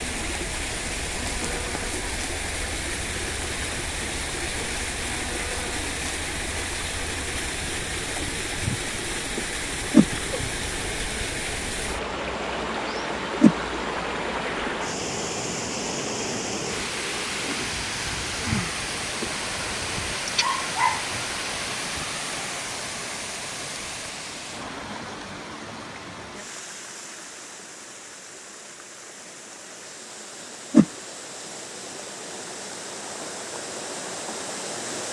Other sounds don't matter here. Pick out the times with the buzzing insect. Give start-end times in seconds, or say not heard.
0.0-20.1.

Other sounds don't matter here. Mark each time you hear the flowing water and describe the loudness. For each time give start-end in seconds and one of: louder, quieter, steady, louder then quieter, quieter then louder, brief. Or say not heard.
0.0-35.0 quieter.